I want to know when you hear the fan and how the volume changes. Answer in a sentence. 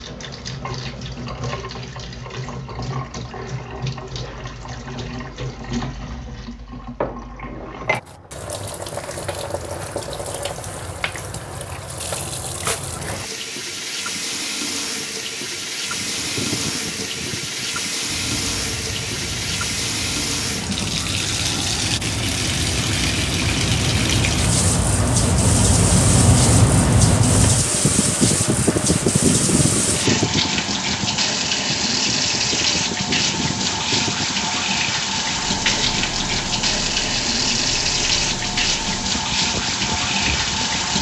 The fan can be heard from 15.8 to 40.9 s, getting louder then quieter.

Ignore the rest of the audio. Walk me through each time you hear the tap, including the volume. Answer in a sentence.
The tap can be heard from 0.0 to 40.9 s, getting louder.